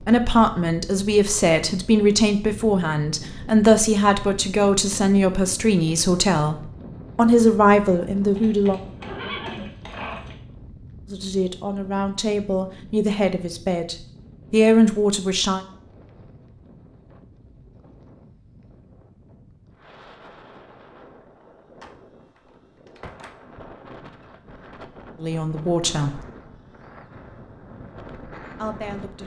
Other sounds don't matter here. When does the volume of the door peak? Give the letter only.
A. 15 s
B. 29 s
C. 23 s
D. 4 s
C.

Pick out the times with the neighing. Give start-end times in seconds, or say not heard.
8.3-10.3.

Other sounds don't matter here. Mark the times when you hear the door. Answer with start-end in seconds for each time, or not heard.
21.8-23.4.